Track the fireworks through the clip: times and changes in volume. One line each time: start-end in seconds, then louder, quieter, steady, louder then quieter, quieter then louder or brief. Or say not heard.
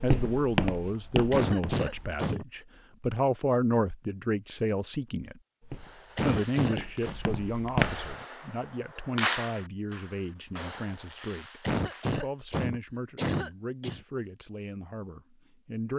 5.7-12.2 louder then quieter.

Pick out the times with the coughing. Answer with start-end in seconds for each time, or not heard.
1.3-2.5, 6.2-7.2, 11.6-14.0.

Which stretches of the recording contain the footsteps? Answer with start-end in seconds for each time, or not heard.
0.0-2.0, 5.6-8.2.